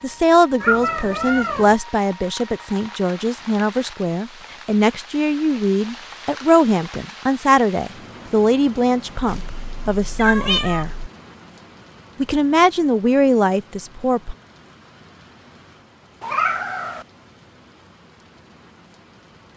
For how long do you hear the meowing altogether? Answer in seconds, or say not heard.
4 s.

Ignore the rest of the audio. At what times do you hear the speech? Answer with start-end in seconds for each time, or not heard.
0.0-10.9, 12.2-14.3.